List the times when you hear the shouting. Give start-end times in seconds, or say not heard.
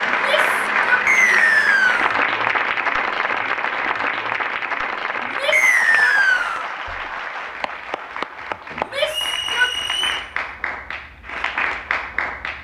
0.1-1.4, 5.2-6.2, 8.8-10.1.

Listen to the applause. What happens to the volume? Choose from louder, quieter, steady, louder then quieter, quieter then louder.
quieter.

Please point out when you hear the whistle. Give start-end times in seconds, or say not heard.
1.1-2.1, 5.5-6.7, 9.1-10.3.